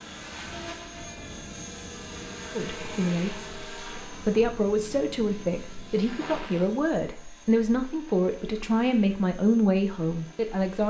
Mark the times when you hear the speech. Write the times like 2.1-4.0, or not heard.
2.5-10.8.